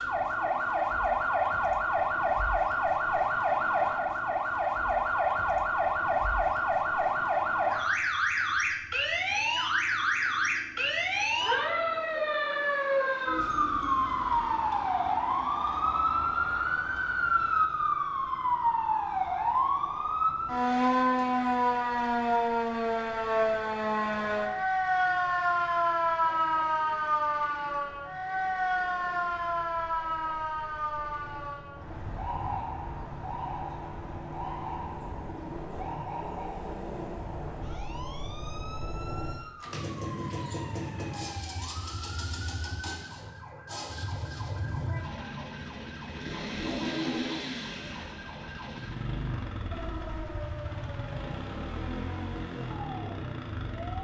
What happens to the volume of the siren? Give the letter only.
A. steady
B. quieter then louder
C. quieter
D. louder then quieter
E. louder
C.